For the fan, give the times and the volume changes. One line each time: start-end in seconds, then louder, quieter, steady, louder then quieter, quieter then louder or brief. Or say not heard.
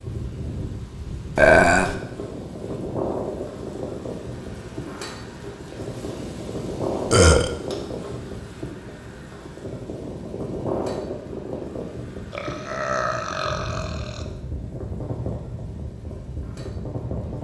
0.0-17.3 steady.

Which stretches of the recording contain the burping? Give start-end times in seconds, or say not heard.
1.4-1.9, 7.1-7.5, 12.3-14.2.